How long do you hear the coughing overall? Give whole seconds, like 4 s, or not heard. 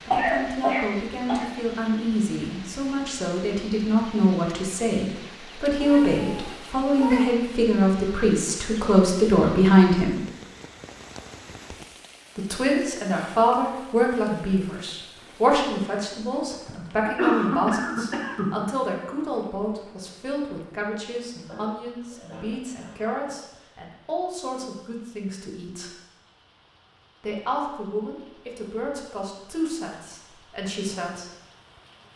5 s.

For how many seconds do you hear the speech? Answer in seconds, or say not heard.
28 s.